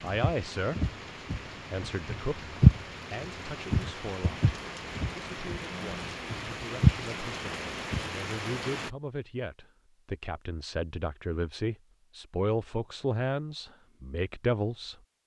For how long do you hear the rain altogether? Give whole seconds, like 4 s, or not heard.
9 s.